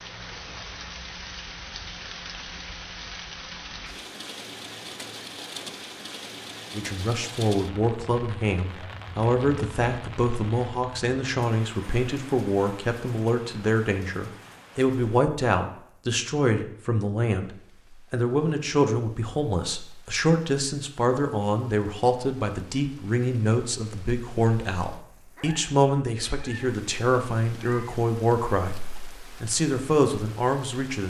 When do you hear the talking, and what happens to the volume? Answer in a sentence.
The talking can be heard from 6.7 to 31.0 s, at a steady volume.